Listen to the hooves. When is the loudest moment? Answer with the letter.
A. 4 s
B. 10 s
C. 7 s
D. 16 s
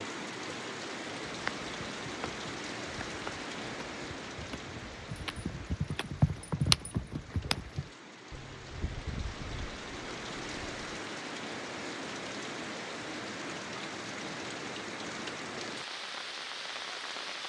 C.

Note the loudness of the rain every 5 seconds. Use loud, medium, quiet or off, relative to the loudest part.
loud, medium, loud, loud.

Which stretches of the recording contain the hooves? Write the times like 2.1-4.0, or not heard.
1.2-10.8.